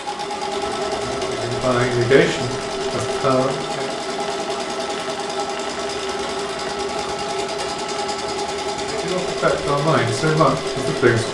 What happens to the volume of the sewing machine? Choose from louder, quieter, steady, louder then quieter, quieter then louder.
steady.